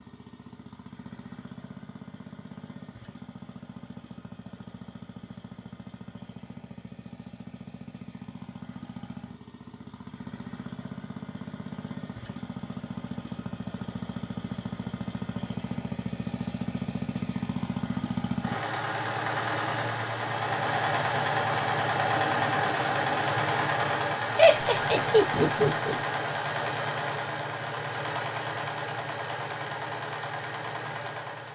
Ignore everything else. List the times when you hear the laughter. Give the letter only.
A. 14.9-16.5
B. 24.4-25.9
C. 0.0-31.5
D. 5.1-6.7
B.